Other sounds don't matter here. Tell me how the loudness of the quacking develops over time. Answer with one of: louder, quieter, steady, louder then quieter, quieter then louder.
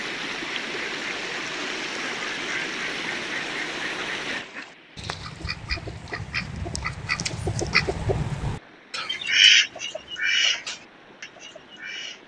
louder then quieter.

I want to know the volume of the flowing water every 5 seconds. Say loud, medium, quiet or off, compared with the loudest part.
loud, quiet, quiet.